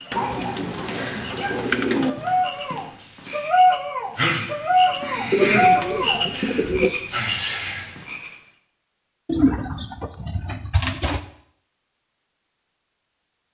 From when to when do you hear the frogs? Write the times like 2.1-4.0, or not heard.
0.0-8.4.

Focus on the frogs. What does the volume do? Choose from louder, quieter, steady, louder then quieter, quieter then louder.
louder.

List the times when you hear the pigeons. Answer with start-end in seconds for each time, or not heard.
0.1-2.1, 5.3-6.9, 9.2-11.2.